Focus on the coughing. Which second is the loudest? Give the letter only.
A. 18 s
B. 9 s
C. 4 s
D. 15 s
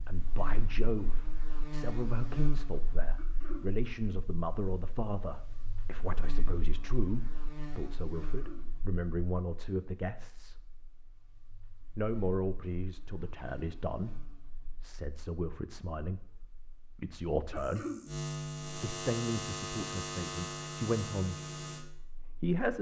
A.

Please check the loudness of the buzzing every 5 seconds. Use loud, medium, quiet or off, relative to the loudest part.
medium, medium, quiet, loud, loud.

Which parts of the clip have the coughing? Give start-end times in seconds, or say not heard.
3.1-3.6, 8.2-8.7, 17.5-18.0.